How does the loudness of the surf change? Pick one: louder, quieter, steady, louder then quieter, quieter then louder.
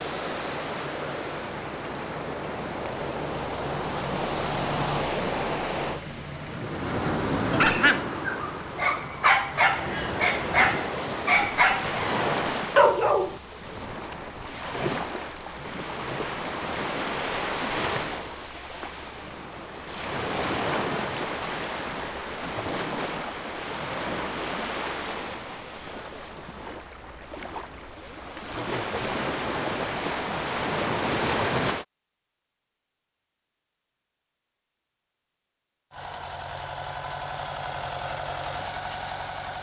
steady.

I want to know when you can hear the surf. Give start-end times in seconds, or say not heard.
0.0-31.9.